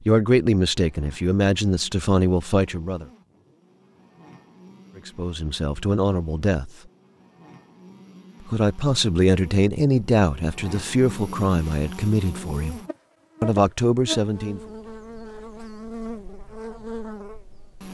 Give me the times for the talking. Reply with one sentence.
The talking can be heard from 0.0 to 3.0 s, from 5.0 to 6.7 s, from 8.4 to 12.8 s and from 13.4 to 14.6 s.